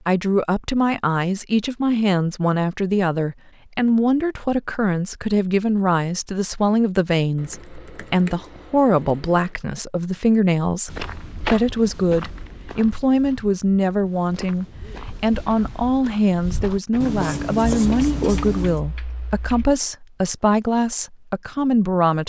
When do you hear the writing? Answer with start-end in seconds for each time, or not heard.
17.0-18.8.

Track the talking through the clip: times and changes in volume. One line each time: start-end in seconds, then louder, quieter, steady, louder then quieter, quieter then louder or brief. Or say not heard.
0.1-22.2 steady.